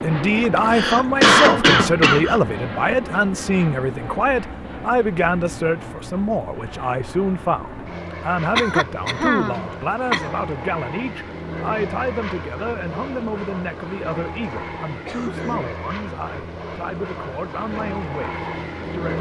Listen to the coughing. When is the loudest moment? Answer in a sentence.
The volume of the coughing peaks at 1 second.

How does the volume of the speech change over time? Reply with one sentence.
The volume of the speech goes down.